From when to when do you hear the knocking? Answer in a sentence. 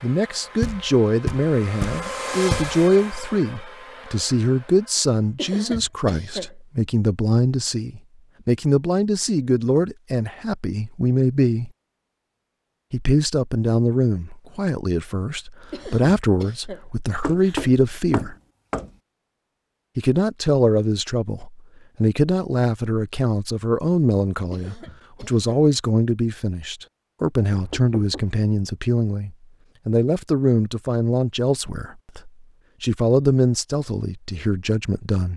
You can hear the knocking from 0.6 to 2.8 s, from 17.2 to 18.9 s and from 27.5 to 28.4 s.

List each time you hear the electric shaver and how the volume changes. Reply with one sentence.
The electric shaver can't be heard in this clip.